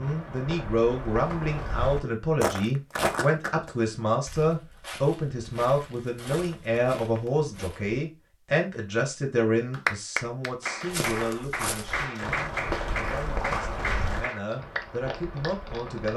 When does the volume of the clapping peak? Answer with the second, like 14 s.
10 s.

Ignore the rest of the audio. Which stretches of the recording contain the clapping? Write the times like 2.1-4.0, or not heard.
9.7-16.1.